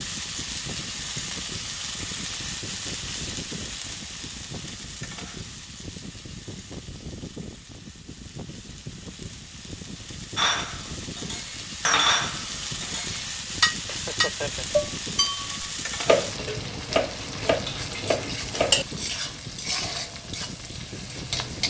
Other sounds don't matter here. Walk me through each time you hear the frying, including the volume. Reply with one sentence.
The frying can be heard from 0.0 to 21.6 s, getting quieter then louder.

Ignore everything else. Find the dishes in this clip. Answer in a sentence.
The dishes can be heard from 10.3 to 18.9 s.